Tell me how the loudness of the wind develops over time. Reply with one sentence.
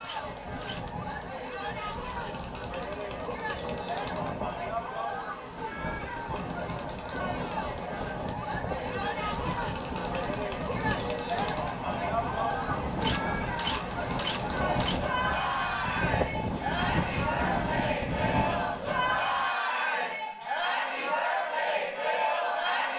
The loudness of the wind goes up.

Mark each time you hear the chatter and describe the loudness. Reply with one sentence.
The chatter can be heard from 0.0 to 22.9 s, getting louder.